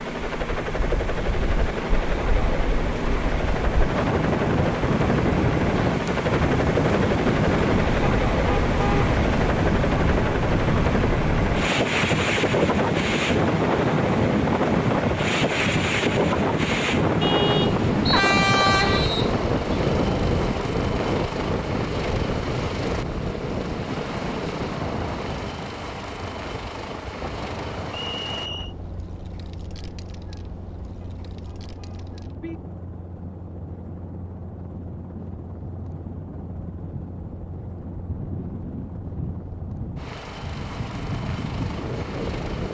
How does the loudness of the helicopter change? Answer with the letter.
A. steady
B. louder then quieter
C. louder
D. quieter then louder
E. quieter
E.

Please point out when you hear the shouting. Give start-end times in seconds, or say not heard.
not heard.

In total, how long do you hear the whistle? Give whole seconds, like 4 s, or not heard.
2 s.